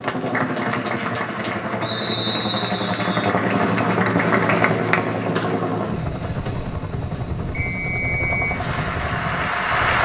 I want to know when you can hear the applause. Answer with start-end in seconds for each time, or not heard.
0.0-5.7, 8.4-10.0.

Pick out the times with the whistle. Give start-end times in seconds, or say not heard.
1.8-3.3, 7.7-8.6.